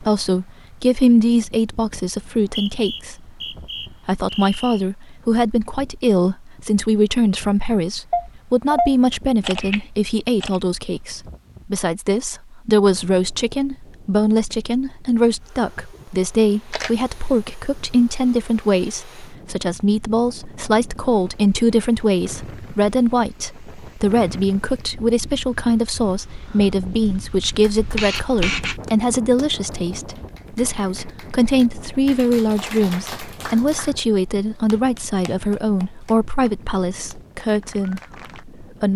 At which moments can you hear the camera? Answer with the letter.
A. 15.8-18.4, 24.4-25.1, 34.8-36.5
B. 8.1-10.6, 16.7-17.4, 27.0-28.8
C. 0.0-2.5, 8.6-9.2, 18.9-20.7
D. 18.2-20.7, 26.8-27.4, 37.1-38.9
B.